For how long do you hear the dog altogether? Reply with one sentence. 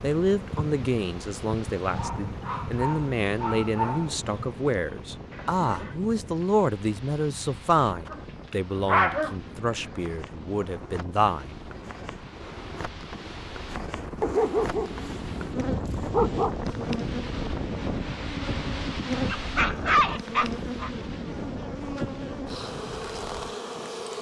The dog can be heard for 8 seconds in total.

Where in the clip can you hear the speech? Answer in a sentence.
The speech can be heard from 0.0 to 11.6 s.